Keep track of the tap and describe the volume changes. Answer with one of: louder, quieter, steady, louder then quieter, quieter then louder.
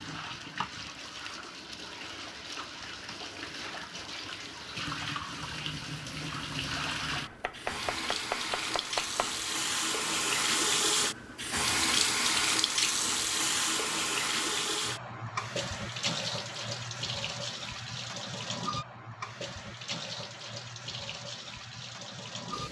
louder then quieter.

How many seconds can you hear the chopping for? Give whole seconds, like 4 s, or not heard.
2 s.